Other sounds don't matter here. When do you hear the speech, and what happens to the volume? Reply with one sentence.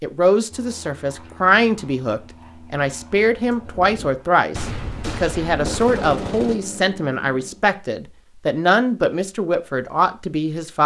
You can hear the speech from 0.0 to 10.8 s, at a steady volume.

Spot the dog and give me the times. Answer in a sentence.
You can't hear the dog here.